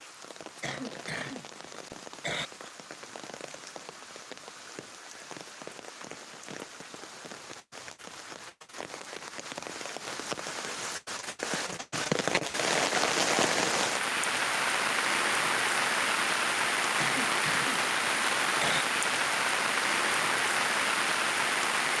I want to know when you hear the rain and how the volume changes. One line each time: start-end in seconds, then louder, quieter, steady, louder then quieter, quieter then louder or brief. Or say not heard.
0.0-21.9 louder.